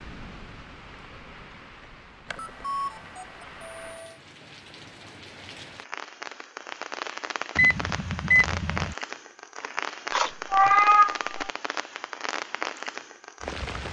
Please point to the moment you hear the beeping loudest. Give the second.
8 s.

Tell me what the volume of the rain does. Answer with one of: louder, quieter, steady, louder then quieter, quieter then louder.
louder.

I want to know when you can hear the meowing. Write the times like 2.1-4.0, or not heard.
10.1-11.5.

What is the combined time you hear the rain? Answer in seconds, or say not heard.
14 s.